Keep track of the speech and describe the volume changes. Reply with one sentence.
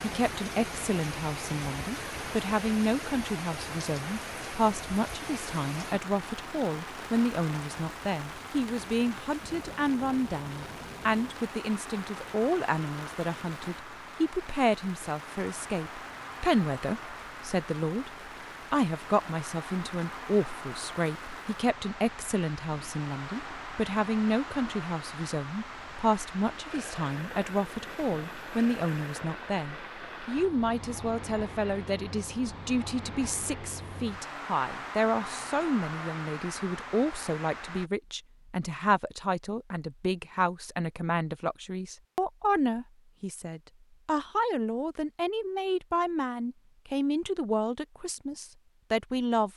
The volume of the speech stays about the same.